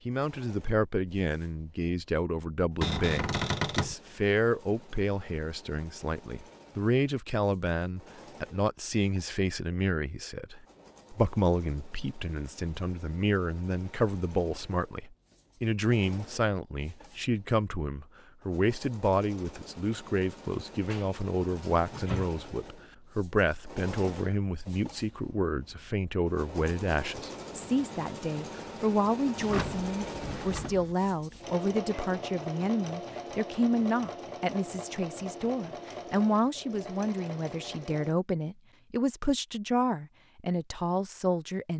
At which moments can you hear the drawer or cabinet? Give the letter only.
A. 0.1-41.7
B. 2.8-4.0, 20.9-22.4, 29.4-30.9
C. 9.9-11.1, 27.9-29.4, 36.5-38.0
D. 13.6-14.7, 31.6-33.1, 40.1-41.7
B.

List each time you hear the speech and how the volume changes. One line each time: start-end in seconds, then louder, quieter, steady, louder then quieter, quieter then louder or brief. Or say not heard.
0.1-41.7 steady.